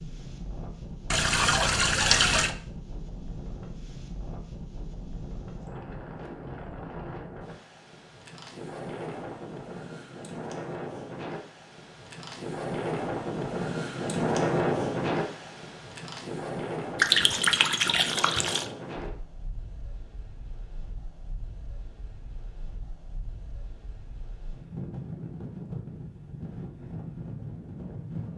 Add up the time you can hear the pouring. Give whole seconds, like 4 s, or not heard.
3 s.